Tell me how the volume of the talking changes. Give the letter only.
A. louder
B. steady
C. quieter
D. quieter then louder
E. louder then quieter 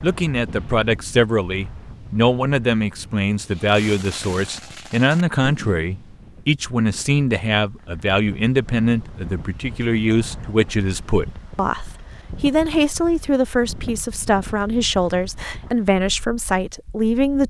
B.